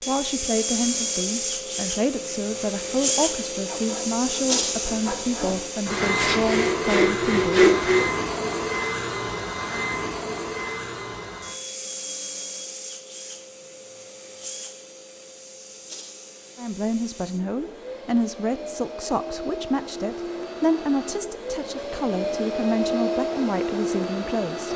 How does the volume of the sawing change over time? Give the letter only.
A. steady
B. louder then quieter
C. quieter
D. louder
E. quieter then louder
D.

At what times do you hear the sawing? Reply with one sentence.
You can hear the sawing from 3.5 to 8.1 s.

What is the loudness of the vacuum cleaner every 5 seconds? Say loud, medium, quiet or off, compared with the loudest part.
loud, loud, medium, medium, loud.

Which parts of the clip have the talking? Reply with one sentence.
You can hear the talking from 0.1 to 7.7 s and from 16.6 to 24.7 s.